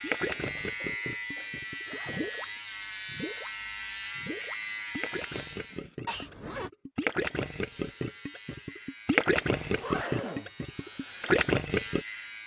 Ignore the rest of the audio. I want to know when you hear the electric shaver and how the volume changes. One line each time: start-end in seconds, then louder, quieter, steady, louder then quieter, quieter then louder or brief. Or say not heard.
0.0-5.9 steady
7.0-12.4 louder.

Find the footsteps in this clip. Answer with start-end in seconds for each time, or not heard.
not heard.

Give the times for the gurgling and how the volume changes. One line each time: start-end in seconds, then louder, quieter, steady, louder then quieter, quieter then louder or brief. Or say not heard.
0.0-12.1 louder.